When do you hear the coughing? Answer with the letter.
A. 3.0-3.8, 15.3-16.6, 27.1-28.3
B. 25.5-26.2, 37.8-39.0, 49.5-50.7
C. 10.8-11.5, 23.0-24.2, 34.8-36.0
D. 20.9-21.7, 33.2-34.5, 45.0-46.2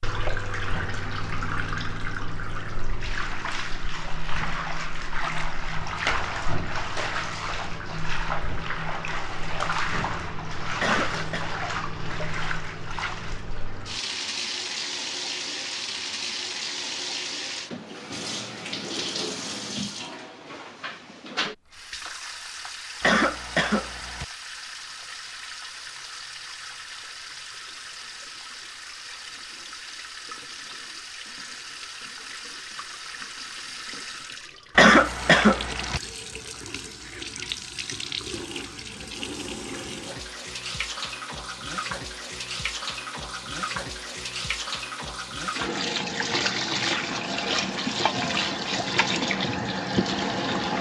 C.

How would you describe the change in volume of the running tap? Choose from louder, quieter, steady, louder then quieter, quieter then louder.
quieter then louder.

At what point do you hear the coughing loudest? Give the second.
35 s.